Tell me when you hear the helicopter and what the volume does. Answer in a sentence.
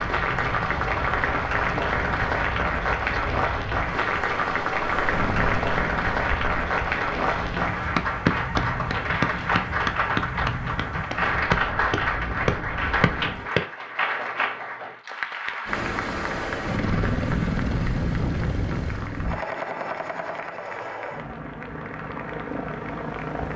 You can hear the helicopter briefly from 4.8 to 6.5 s; and from 15.7 to 23.5 s, getting quieter.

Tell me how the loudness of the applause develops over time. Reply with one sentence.
The volume of the applause goes down.